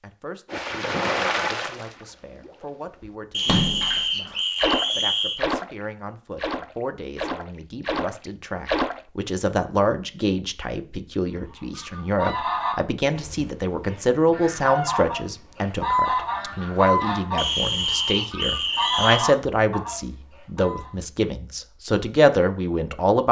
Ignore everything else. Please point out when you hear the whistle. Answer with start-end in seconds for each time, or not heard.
3.3-5.5, 17.4-19.2.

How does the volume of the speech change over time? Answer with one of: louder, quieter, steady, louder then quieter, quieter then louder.
louder.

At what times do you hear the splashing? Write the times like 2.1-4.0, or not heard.
0.5-9.0.